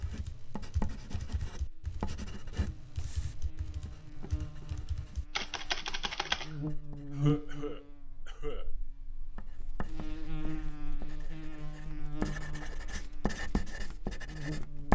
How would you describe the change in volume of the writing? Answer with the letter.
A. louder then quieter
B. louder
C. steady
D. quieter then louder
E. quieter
D.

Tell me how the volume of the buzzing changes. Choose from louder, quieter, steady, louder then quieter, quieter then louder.
louder then quieter.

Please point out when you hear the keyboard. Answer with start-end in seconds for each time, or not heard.
0.0-6.5.